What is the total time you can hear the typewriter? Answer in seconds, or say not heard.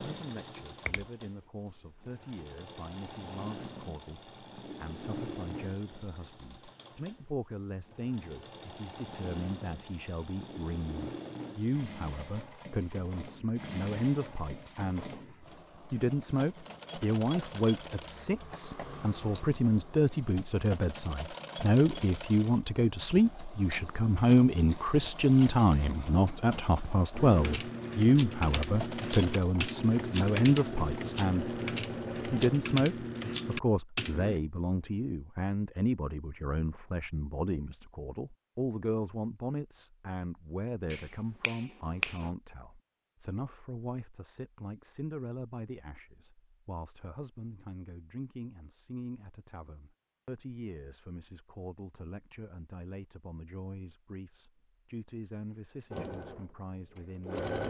7 s.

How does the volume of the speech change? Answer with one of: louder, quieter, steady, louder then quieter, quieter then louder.
louder then quieter.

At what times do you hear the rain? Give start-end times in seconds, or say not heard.
not heard.